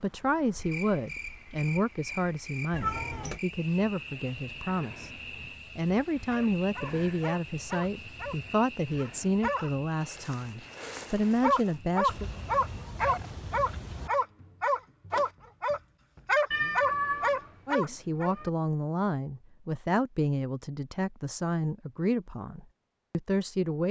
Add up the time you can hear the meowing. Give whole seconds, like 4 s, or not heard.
5 s.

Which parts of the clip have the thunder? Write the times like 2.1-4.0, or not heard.
not heard.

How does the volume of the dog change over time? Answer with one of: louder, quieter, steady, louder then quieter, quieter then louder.
louder.